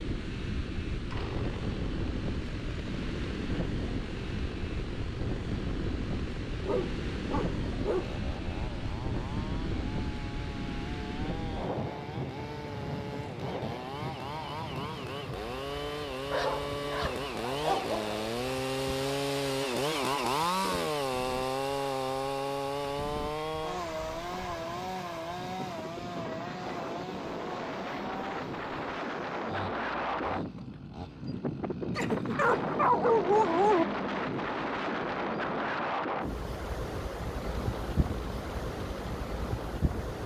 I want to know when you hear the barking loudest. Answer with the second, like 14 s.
33 s.